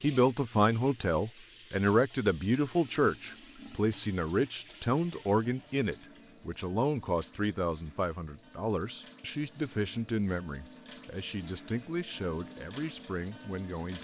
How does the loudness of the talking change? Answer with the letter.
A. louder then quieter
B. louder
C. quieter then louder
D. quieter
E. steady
D.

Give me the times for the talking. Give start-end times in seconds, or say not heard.
0.0-13.9.